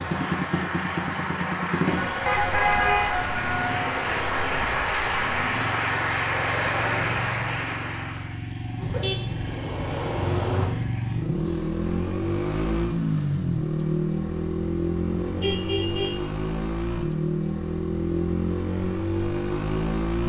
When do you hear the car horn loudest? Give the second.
3 s.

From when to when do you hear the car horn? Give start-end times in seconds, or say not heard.
2.2-3.1, 8.8-10.7, 15.1-16.2.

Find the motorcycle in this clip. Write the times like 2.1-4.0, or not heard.
0.0-20.2.